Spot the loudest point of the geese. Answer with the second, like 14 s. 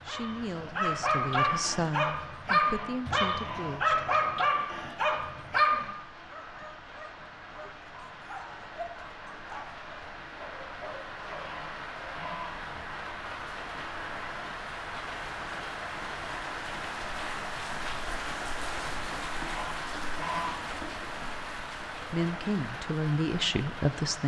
20 s.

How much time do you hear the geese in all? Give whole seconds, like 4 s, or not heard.
4 s.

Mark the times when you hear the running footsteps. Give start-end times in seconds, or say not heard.
not heard.